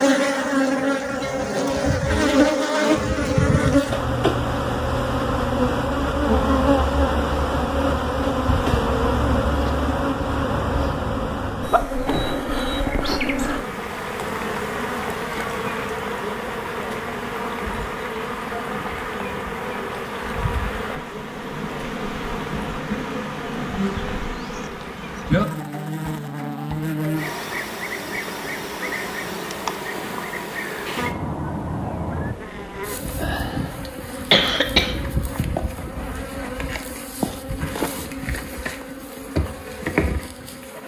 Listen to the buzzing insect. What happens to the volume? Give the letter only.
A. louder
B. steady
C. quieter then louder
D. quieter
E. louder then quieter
D.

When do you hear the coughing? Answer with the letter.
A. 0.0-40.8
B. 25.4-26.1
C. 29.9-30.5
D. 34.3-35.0
D.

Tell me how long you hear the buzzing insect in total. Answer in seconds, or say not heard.
41 s.